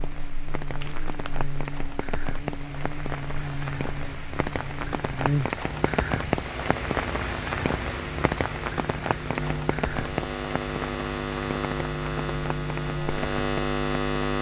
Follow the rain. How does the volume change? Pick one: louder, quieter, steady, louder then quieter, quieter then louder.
louder then quieter.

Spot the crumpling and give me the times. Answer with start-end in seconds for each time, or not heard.
0.8-1.4.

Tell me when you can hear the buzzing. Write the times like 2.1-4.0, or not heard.
0.0-14.3.